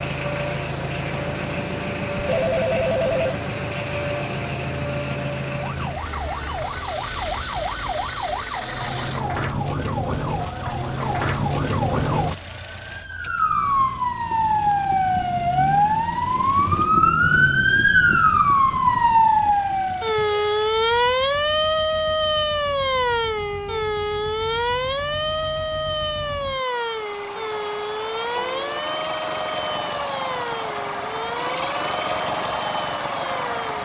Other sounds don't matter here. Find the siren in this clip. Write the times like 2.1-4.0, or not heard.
0.0-33.8.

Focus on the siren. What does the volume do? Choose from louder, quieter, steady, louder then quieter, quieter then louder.
louder then quieter.